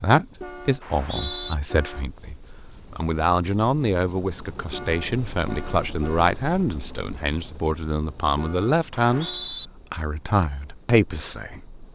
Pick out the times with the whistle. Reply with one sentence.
You can hear the whistle from 0.8 to 1.6 s and from 8.9 to 9.7 s.